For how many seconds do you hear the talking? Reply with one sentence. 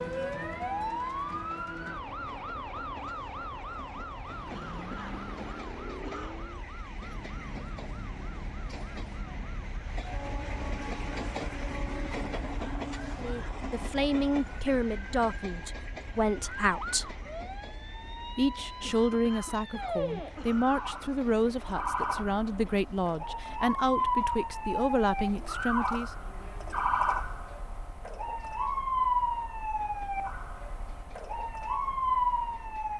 You can hear the talking for 12 seconds altogether.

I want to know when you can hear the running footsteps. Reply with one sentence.
The running footsteps can't be heard in this clip.